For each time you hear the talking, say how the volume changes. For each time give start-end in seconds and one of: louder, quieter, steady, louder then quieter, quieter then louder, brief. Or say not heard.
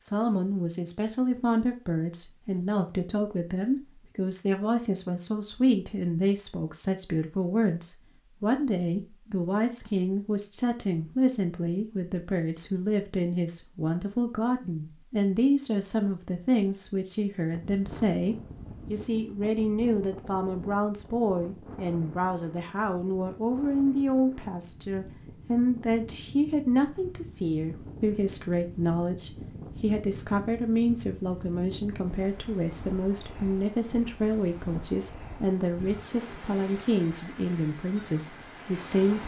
0.0-39.2 steady.